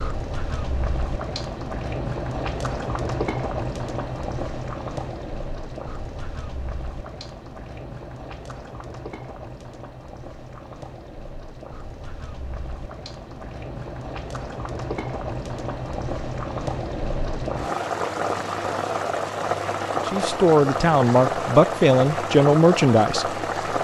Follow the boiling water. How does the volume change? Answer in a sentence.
The loudness of the boiling water goes down, then up.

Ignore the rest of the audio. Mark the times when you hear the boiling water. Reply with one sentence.
You can hear the boiling water from 0.0 to 23.7 s.